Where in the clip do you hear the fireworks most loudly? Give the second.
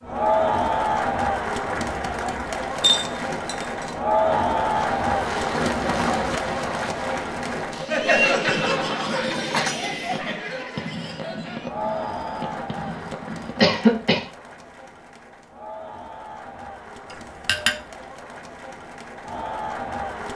6 s.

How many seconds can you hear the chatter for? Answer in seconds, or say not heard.
20 s.